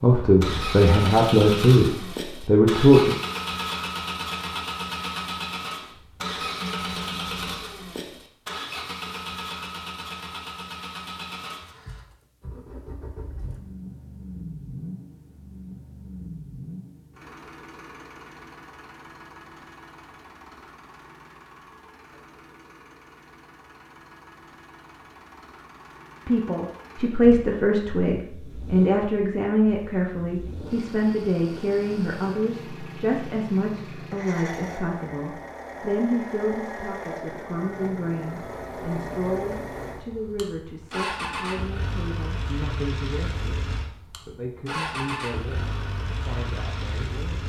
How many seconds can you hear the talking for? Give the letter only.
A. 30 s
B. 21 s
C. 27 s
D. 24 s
D.